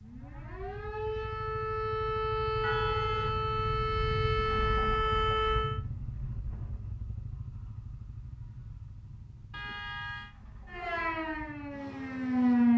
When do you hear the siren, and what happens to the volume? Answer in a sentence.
The siren can be heard from 0.0 to 5.8 s, getting louder; and briefly from 10.7 to 12.7 s.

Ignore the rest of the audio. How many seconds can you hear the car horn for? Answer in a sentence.
The car horn can be heard for 2 seconds in total.